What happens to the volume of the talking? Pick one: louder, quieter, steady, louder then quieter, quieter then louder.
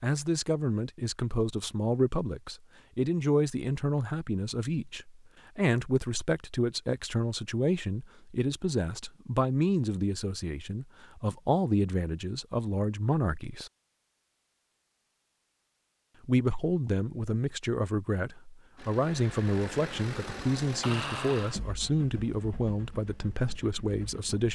steady.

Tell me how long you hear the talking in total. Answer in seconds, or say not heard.
22 s.